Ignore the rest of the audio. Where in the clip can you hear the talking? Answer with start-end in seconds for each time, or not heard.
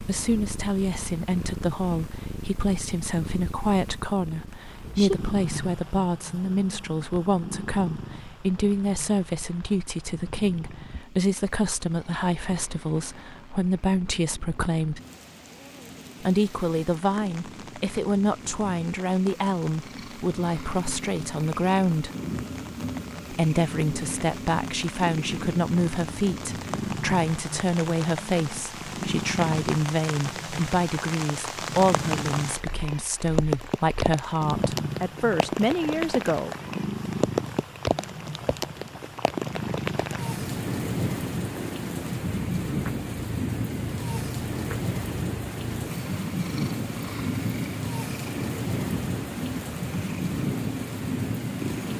0.0-15.0, 16.2-22.1, 23.3-36.5.